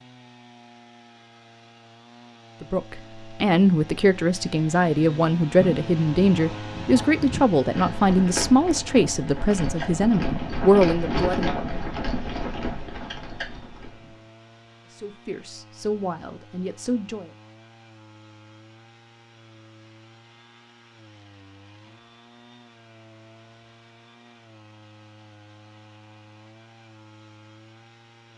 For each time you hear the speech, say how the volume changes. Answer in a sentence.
The speech can be heard from 2.6 to 11.4 s, at a steady volume; and briefly from 14.9 to 17.3 s.